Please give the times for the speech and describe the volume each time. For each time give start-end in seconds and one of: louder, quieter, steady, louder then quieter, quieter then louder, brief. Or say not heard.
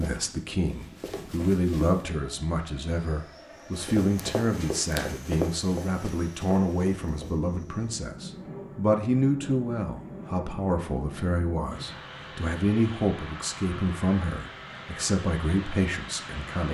0.0-16.6 steady.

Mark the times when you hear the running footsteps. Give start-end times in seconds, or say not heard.
0.0-2.0, 3.8-7.5.